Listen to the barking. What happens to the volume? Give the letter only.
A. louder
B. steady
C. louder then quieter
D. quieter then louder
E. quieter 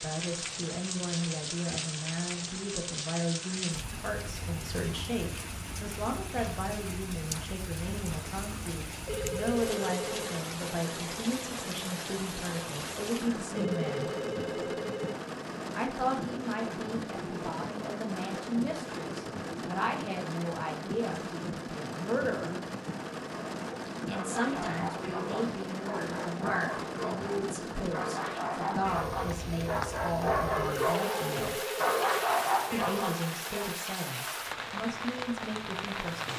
A.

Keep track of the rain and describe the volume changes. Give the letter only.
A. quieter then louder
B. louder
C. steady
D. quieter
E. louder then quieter
C.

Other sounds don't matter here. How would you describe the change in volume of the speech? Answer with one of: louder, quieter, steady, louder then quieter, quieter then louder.
steady.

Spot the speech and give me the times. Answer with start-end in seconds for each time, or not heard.
0.0-14.1, 15.7-22.6, 24.1-31.6, 32.7-36.3.